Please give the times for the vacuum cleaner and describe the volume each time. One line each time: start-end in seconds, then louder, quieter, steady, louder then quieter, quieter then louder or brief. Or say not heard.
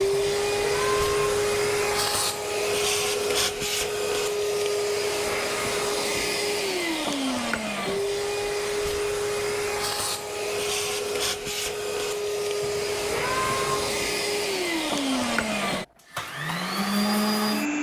0.0-17.7 steady.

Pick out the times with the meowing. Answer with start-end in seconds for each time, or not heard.
0.1-1.9, 12.6-14.1.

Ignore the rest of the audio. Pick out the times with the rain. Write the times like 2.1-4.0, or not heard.
not heard.